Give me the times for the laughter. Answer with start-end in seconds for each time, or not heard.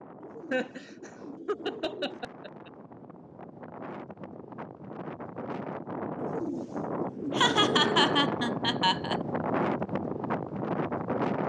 0.5-2.7, 7.3-9.2.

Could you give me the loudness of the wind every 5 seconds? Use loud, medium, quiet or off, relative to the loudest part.
quiet, loud, loud.